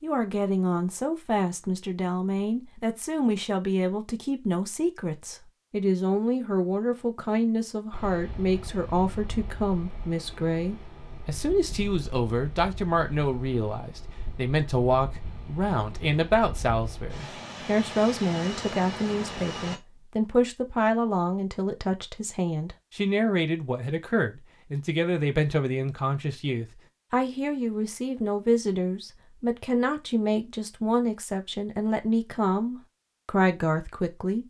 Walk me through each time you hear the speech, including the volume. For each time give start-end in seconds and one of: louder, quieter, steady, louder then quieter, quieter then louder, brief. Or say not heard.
0.0-34.4 steady.